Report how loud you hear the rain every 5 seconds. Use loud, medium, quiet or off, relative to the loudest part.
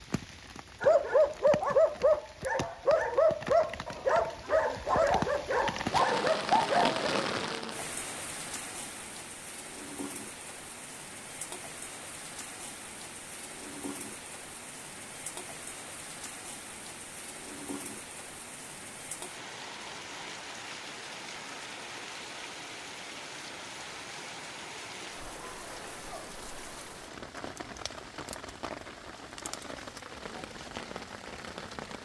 medium, loud, medium, medium, medium, medium, medium.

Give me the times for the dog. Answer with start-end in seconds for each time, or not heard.
0.8-7.1.